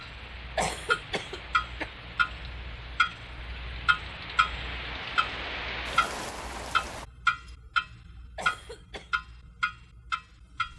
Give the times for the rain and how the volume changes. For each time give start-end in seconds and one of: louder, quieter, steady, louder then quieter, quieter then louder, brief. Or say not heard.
0.0-7.0 louder.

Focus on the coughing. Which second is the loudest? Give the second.
1 s.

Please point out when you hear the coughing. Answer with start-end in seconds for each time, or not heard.
0.6-1.9, 8.3-9.2.